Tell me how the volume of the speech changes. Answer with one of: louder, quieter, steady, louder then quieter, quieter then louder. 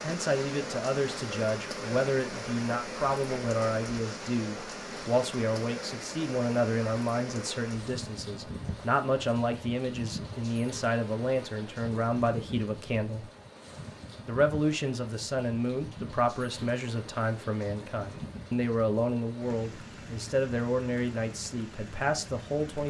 steady.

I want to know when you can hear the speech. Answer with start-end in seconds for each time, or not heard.
0.0-13.2, 14.2-22.8.